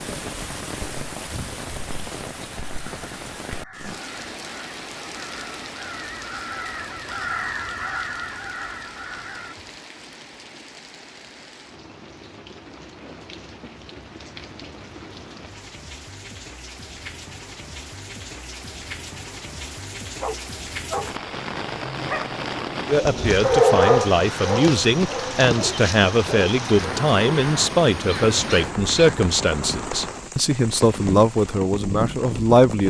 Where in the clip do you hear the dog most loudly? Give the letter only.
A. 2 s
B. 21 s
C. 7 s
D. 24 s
D.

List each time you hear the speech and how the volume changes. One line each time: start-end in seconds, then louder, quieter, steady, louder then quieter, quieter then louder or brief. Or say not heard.
22.9-32.8 steady.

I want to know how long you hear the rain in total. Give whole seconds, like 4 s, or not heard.
33 s.